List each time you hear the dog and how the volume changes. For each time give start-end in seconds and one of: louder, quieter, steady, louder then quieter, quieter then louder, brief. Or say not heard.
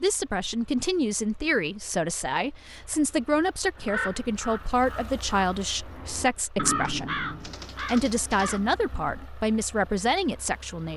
not heard.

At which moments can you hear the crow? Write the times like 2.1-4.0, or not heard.
3.8-9.2.